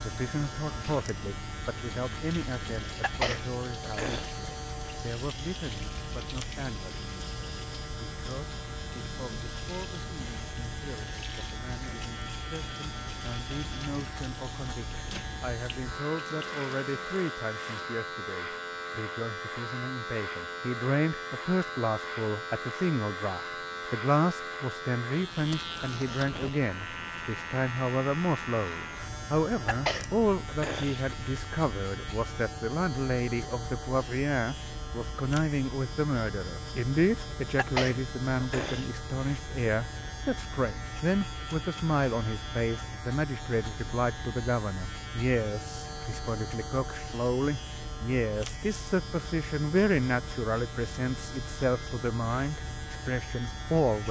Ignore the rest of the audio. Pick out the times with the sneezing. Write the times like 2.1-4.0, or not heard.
3.0-4.3, 29.6-31.0, 37.5-38.9.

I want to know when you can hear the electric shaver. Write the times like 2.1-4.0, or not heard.
0.0-54.0.